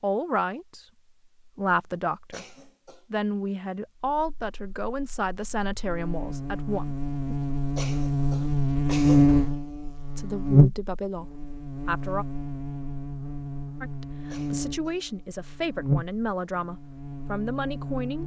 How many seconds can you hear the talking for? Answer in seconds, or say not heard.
13 s.